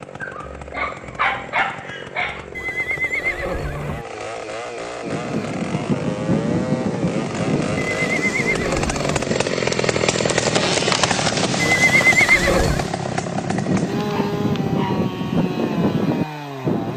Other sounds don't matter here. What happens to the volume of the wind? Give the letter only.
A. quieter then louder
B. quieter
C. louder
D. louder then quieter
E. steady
A.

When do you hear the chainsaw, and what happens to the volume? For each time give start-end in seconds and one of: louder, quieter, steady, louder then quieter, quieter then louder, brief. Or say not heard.
0.0-16.9 louder then quieter.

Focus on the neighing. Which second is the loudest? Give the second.
12 s.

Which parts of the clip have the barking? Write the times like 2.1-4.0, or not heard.
0.2-2.5, 14.0-15.1.